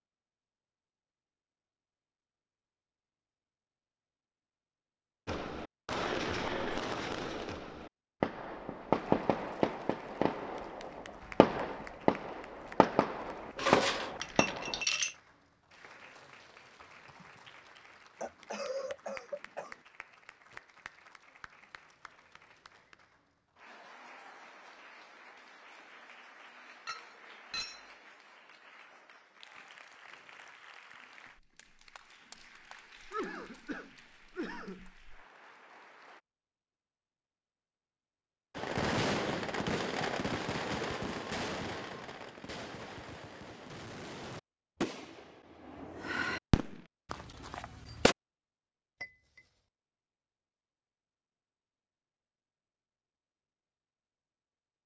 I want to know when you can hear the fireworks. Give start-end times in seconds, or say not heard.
5.2-14.8, 38.5-48.1.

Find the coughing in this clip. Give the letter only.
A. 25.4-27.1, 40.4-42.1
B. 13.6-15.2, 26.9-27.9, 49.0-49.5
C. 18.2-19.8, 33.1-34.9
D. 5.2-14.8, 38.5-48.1
C.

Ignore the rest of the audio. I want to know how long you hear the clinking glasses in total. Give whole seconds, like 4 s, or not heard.
3 s.